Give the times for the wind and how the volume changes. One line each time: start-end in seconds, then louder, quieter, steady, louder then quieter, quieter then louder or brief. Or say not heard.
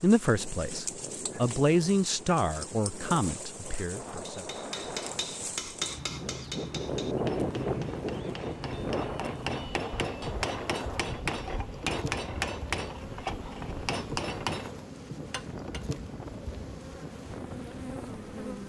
0.2-18.6 louder then quieter.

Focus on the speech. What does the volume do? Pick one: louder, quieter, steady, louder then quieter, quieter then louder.
louder then quieter.